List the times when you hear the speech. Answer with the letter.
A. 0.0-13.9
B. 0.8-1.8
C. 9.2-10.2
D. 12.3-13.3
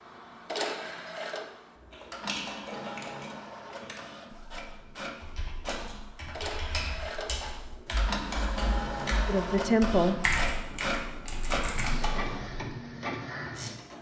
C.